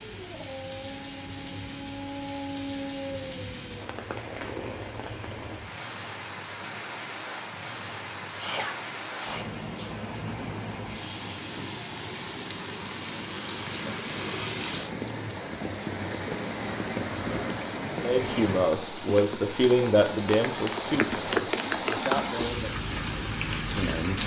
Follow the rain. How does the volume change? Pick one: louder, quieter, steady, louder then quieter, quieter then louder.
louder.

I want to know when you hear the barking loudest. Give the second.
3 s.